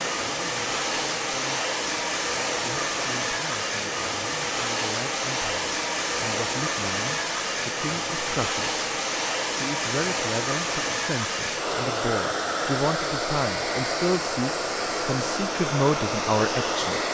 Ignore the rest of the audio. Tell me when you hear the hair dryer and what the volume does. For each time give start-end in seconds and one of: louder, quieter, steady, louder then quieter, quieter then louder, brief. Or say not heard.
0.0-17.1 steady.